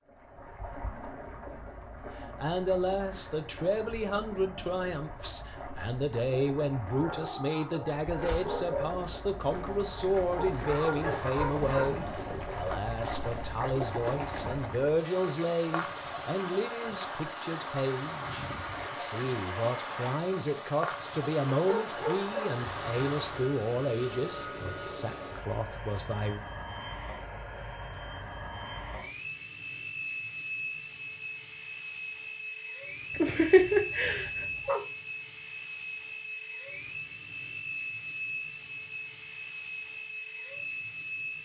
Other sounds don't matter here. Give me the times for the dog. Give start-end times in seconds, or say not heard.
6.8-8.8, 10.3-12.0, 21.6-22.6, 33.1-34.8.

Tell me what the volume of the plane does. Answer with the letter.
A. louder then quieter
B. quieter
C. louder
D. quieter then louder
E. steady
E.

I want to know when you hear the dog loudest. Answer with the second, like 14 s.
34 s.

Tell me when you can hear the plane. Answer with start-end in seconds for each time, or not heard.
22.5-41.4.